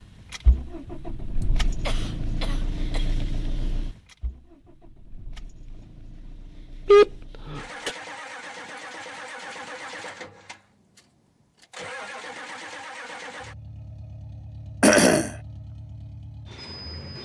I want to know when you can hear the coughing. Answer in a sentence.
You can hear the coughing from 1.9 to 3.0 s, from 6.8 to 7.9 s and from 14.8 to 15.3 s.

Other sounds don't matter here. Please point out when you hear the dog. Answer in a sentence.
The dog can't be heard in this clip.